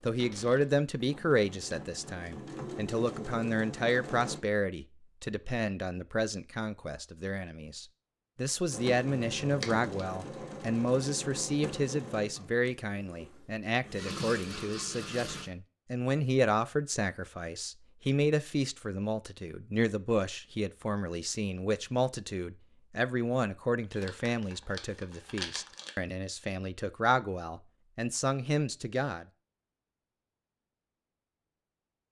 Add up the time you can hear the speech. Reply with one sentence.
The speech can be heard for 29 seconds in total.